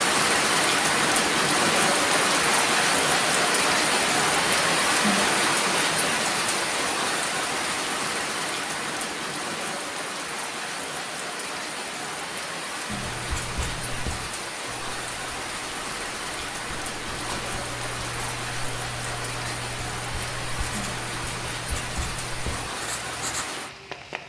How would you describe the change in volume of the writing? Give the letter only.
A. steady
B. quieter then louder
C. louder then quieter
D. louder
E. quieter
B.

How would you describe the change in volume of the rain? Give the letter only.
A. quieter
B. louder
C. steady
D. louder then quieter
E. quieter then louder
A.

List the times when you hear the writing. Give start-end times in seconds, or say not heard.
12.9-23.4.